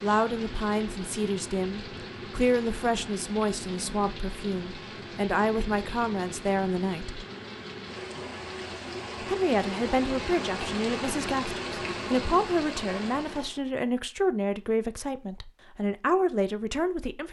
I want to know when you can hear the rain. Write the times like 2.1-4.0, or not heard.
0.0-13.6.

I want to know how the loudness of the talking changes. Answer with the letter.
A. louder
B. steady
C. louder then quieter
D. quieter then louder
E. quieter
B.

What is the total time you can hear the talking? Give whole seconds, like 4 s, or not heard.
15 s.